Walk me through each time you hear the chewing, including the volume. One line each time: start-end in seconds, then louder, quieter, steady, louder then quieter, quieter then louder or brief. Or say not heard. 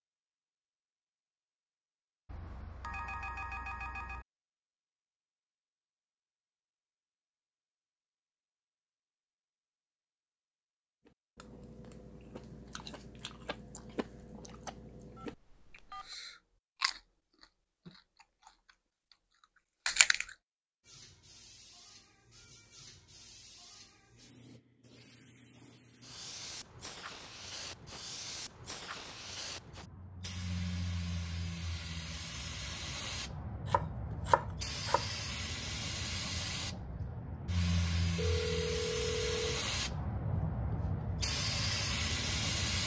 11.1-20.2 louder then quieter.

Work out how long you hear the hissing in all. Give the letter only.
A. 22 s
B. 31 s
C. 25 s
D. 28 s
A.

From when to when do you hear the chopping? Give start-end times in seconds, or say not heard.
33.6-35.0.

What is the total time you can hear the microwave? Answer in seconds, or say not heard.
not heard.